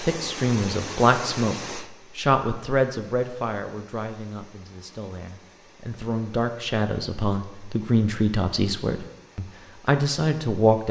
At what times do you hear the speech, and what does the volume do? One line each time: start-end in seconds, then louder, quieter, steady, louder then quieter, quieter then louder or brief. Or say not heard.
0.0-10.8 quieter then louder.